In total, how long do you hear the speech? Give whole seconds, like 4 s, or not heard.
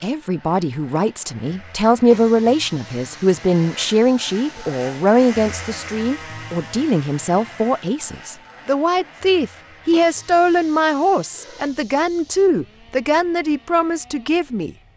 15 s.